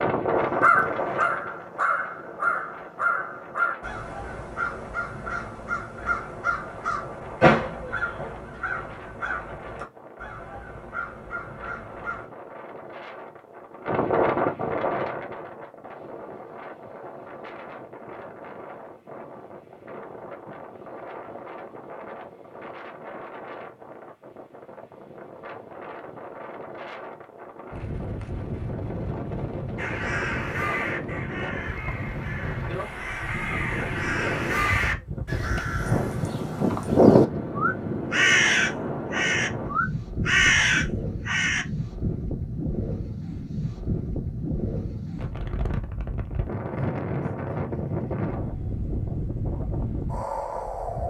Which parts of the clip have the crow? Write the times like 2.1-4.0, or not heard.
0.3-12.2, 29.8-41.6.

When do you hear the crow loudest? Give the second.
37 s.